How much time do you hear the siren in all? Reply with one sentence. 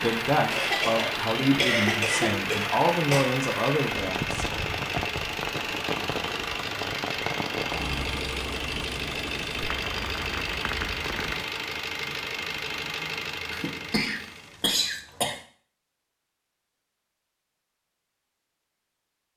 The siren can't be heard in this clip.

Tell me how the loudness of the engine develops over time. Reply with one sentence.
The loudness of the engine stays about the same.